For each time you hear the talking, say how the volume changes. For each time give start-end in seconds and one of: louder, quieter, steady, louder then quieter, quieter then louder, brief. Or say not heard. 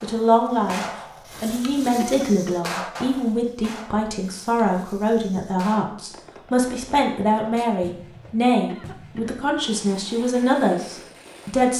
0.0-0.8 brief
1.4-11.7 steady.